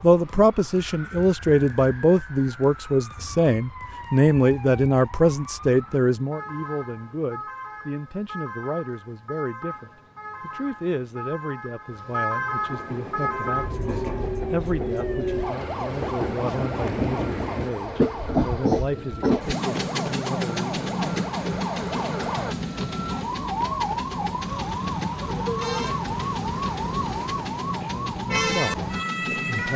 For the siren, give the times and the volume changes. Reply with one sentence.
You can hear the siren from 0.0 to 29.7 s, getting louder.